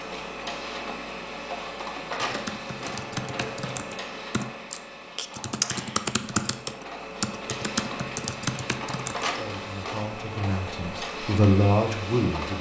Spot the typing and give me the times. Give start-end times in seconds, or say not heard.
2.2-9.2.